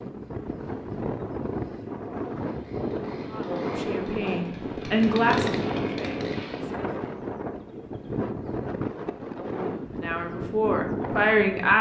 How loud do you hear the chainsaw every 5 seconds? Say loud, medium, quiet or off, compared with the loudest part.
medium, loud, off.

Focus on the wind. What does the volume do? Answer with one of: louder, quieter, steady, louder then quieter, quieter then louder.
steady.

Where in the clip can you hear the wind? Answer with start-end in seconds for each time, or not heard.
0.0-11.7.